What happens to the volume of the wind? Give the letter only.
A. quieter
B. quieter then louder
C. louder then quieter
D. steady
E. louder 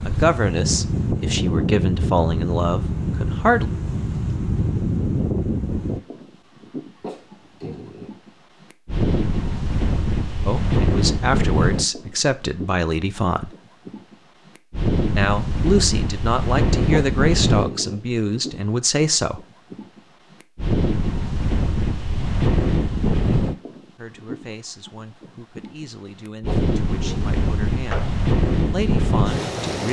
D.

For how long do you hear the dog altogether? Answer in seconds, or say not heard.
3 s.